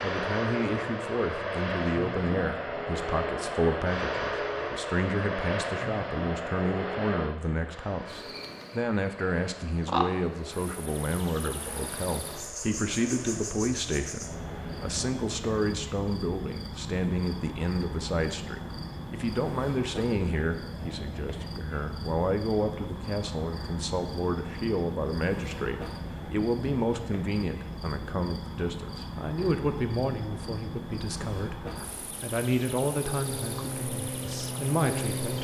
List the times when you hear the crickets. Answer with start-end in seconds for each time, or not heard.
8.1-35.3.